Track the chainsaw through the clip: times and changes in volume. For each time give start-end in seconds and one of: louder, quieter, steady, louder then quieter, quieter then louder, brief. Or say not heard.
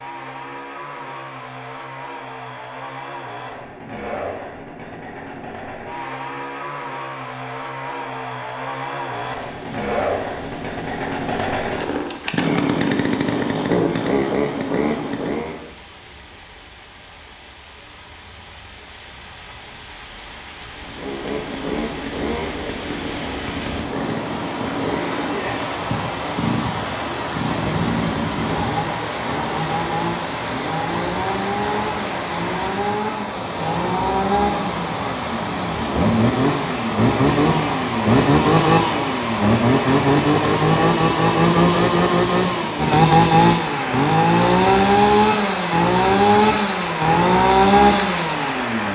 0.0-15.7 louder
20.8-48.9 louder.